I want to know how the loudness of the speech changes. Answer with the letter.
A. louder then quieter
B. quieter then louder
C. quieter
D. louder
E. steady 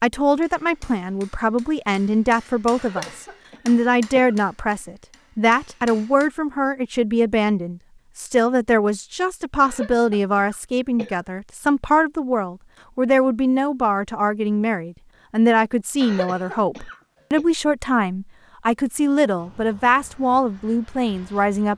E.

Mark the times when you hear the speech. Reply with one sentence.
The speech can be heard from 0.0 to 21.7 s.